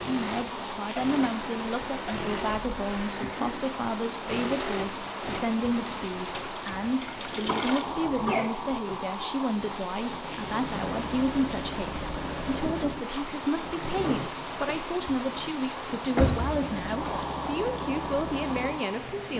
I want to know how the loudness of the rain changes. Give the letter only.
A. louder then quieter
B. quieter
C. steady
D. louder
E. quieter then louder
C.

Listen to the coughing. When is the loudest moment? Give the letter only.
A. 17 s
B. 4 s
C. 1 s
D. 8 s
D.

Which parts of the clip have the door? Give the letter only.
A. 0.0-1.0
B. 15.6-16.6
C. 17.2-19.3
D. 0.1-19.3
B.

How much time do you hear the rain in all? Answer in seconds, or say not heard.
19 s.